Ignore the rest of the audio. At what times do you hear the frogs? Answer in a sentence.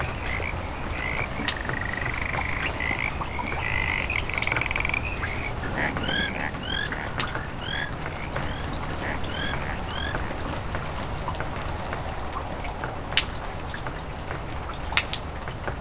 The frogs can be heard from 0.2 to 10.3 s.